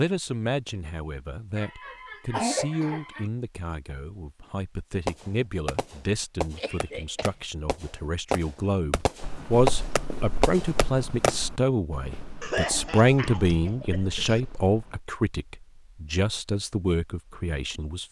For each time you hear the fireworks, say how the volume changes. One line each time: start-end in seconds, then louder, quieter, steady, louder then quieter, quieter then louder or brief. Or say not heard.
5.0-11.3 quieter then louder.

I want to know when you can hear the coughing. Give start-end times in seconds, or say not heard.
1.6-3.3, 6.5-7.3, 12.4-14.4.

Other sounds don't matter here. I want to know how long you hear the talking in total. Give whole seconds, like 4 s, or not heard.
18 s.